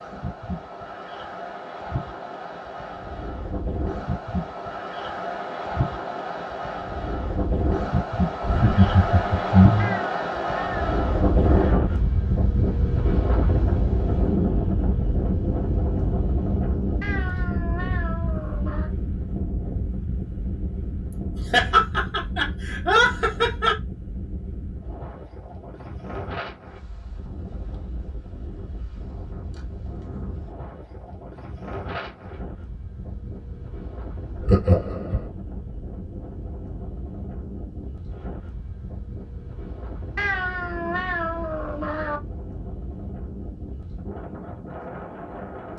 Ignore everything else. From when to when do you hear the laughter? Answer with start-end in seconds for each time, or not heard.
8.4-10.0, 21.4-23.8, 34.4-35.2.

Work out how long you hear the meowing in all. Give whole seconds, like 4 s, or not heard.
6 s.